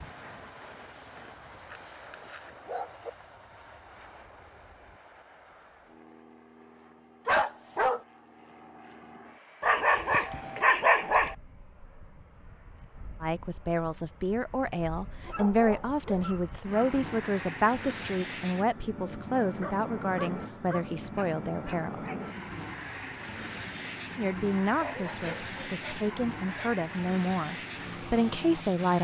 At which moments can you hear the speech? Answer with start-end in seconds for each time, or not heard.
13.2-22.0, 24.1-28.9.